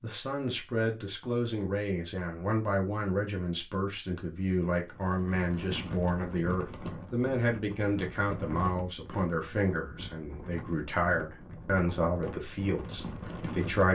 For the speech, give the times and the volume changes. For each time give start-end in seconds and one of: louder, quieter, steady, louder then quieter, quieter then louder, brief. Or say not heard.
0.0-13.9 steady.